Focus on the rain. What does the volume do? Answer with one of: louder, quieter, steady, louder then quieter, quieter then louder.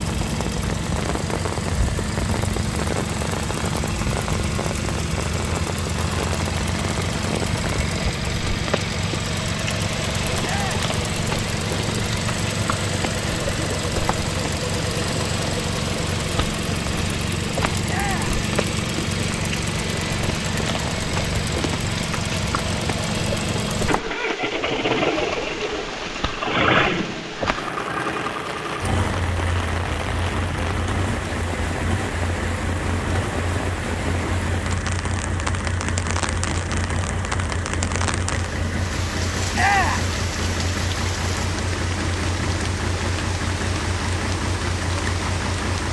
steady.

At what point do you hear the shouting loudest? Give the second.
40 s.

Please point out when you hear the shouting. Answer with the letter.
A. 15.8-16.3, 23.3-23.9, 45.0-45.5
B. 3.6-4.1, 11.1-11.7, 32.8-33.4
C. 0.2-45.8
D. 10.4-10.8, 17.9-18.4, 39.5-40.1
D.